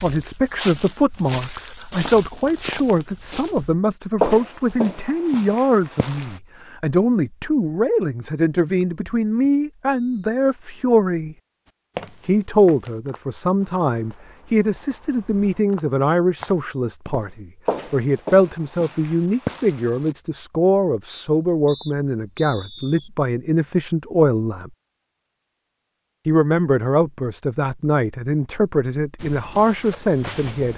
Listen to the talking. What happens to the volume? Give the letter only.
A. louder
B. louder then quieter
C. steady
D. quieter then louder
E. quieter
C.